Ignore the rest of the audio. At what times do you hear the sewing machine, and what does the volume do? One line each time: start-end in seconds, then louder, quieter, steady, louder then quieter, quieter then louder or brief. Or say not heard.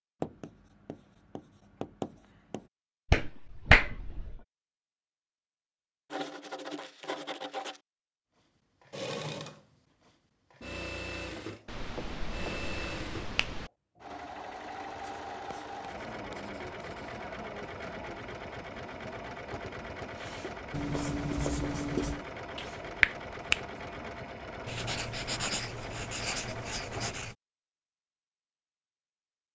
8.8-27.4 steady.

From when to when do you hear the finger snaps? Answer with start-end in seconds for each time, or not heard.
3.1-4.4, 11.7-13.7, 22.6-23.6.